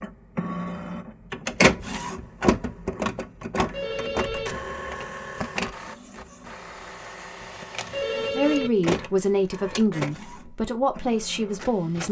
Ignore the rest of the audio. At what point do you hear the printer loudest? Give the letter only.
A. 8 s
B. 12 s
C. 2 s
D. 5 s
C.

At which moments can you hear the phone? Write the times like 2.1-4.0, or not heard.
3.7-4.5, 7.9-8.7.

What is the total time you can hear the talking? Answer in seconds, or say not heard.
4 s.